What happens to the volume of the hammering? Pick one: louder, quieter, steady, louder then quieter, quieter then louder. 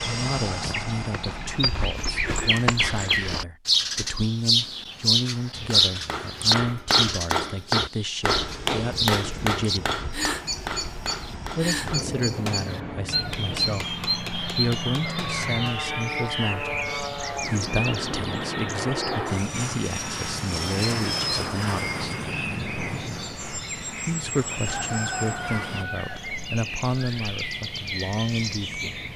quieter.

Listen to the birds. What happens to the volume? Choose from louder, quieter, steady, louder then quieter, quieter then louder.
quieter.